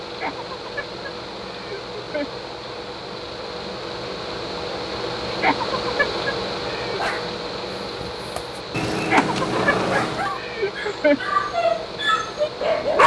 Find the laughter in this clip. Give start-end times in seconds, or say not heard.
0.2-2.5, 5.3-7.0, 9.1-11.3.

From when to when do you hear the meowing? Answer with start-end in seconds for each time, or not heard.
8.7-10.3.